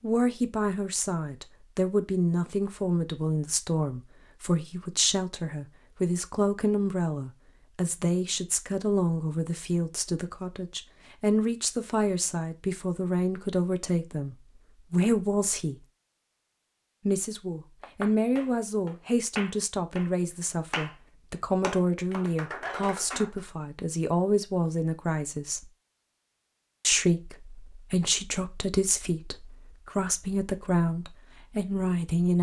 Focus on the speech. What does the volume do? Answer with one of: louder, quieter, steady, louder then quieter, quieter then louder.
steady.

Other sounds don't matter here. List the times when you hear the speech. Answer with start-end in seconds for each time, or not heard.
0.0-15.8, 17.1-25.7, 26.8-32.3.